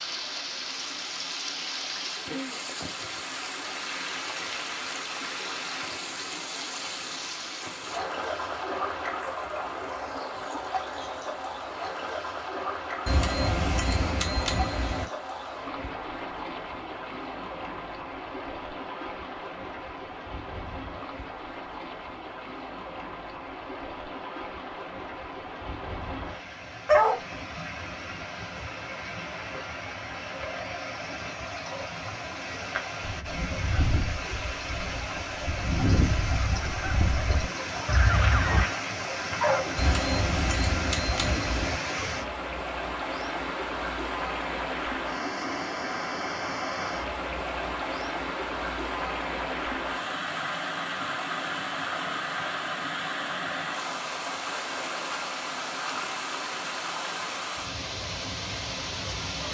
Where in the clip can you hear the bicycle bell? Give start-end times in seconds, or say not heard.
13.1-15.1, 39.8-41.8.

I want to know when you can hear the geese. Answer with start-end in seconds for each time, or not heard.
33.0-38.6.